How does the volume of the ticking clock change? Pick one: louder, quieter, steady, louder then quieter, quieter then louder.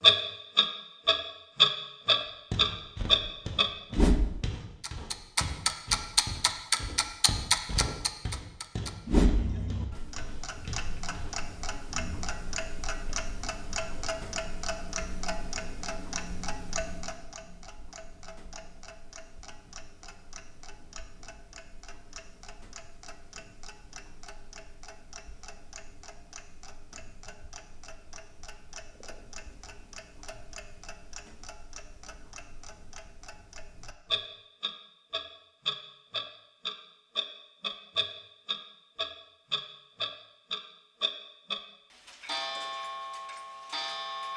quieter then louder.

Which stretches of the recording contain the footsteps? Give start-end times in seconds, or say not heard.
2.2-11.3.